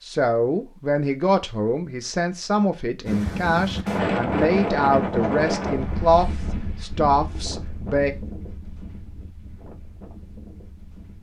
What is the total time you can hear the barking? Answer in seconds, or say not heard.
not heard.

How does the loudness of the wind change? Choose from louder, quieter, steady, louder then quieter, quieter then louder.
quieter.